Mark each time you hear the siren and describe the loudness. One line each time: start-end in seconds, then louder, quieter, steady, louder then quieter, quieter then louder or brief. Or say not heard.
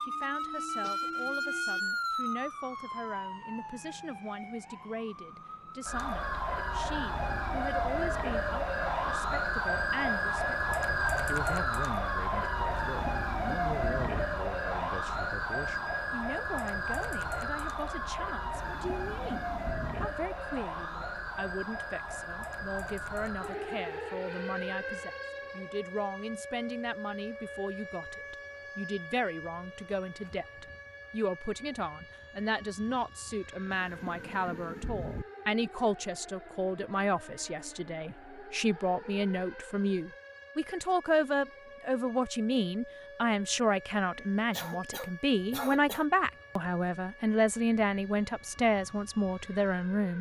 0.0-50.1 quieter.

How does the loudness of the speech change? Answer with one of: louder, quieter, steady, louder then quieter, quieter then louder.
louder.